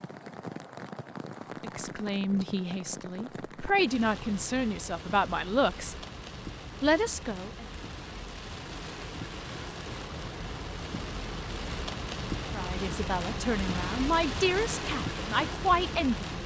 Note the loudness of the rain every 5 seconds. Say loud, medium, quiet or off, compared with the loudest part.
medium, medium, loud, loud.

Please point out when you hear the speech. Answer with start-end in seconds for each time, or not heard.
1.6-6.0, 6.8-7.7, 12.5-16.4.